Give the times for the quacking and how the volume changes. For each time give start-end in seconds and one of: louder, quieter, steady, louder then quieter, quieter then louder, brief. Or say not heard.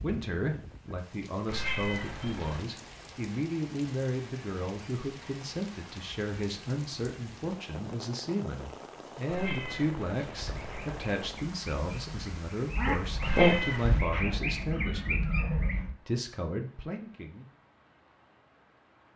10.4-15.9 louder then quieter.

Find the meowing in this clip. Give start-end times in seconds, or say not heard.
1.4-2.7, 9.2-11.3, 13.2-14.1.